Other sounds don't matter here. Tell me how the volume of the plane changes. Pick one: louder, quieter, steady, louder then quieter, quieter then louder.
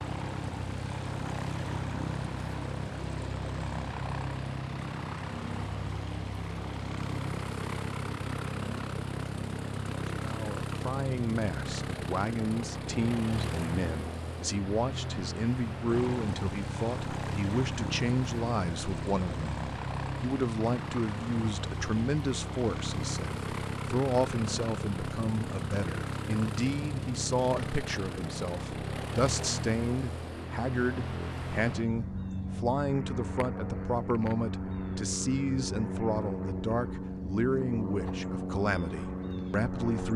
steady.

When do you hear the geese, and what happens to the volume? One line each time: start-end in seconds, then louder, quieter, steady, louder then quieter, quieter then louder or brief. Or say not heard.
not heard.